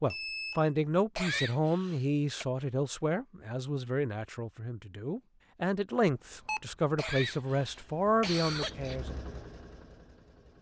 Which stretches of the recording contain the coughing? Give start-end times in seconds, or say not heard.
1.1-2.5, 7.0-9.0.